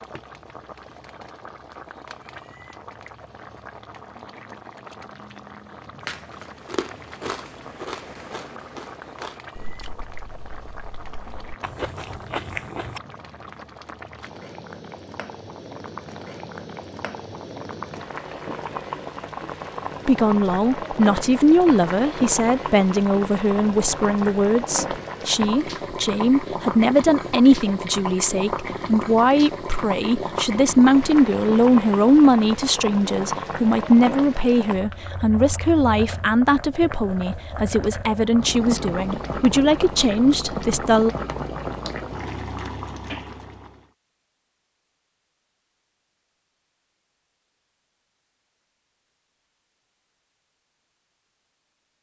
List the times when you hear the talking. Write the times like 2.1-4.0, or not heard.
20.1-41.1.